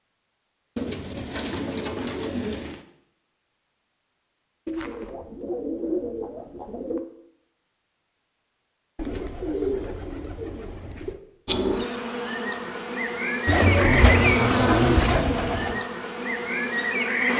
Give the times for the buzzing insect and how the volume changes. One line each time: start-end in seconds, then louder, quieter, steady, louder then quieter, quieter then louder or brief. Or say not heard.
11.4-17.3 louder then quieter.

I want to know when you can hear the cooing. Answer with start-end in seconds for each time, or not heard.
0.8-2.9, 4.7-7.0, 8.9-11.2, 13.4-15.8.